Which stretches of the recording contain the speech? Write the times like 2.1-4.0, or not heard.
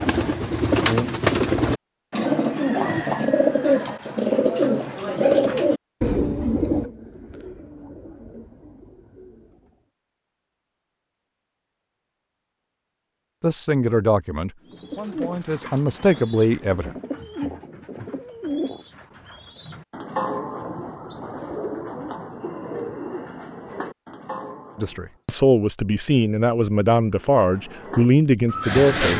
13.4-16.9, 24.8-29.1.